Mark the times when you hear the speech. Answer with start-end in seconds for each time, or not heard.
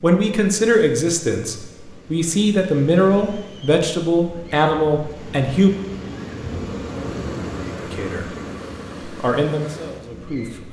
0.0-5.7, 7.8-8.2, 9.0-10.6.